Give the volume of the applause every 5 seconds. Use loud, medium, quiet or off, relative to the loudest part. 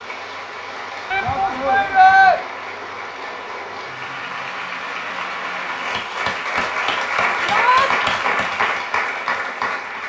medium, loud.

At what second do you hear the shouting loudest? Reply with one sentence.
The volume of the shouting peaks at 2 seconds.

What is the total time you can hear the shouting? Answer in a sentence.
The shouting can be heard for 2 seconds in total.